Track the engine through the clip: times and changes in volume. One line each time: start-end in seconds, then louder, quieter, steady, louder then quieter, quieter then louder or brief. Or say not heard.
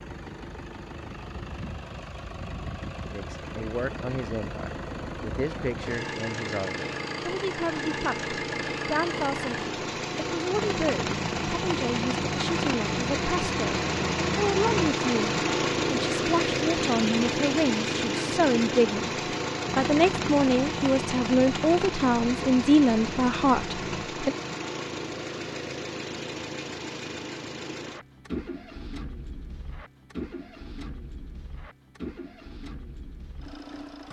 0.0-34.0 louder then quieter.